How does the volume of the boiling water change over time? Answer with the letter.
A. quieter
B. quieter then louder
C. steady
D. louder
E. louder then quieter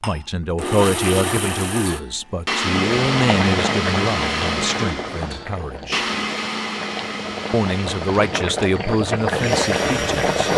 B.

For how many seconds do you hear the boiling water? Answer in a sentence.
You can hear the boiling water for 8 seconds altogether.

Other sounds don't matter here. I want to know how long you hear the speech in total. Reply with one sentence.
You can hear the speech for 9 seconds altogether.